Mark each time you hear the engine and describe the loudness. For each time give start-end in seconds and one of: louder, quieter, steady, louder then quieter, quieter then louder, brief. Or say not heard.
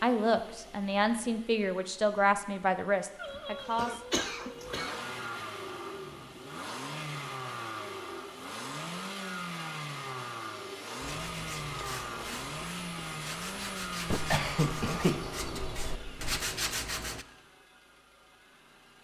0.0-18.9 louder then quieter.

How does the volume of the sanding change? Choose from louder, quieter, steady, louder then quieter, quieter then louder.
louder.